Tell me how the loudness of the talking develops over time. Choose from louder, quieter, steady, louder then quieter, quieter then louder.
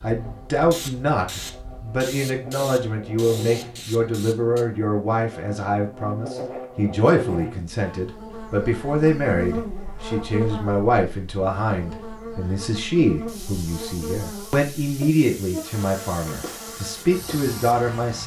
steady.